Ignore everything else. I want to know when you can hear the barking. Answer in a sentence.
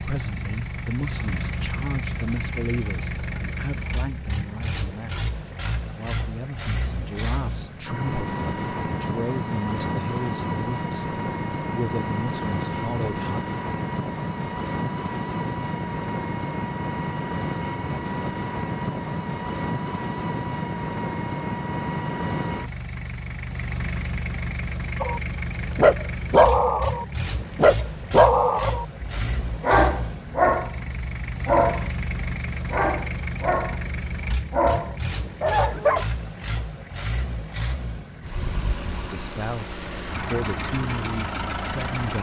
You can hear the barking from 25.0 to 36.0 s.